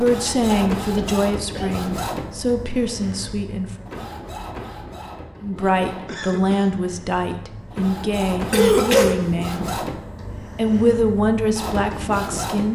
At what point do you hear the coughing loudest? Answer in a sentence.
The volume of the coughing peaks at 9 seconds.